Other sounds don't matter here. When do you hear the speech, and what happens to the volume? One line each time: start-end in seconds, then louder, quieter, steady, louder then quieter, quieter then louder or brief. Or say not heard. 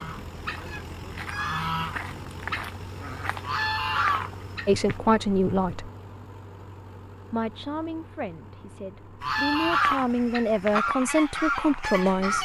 4.7-5.9 brief
7.3-12.4 quieter then louder.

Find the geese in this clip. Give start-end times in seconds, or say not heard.
0.0-5.0, 9.2-12.4.